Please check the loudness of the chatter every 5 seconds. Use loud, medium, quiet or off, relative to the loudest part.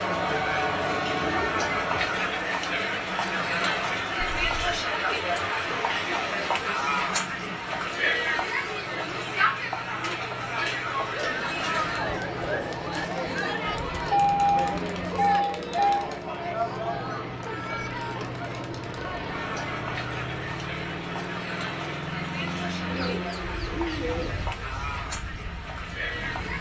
loud, loud, loud, medium, medium, medium.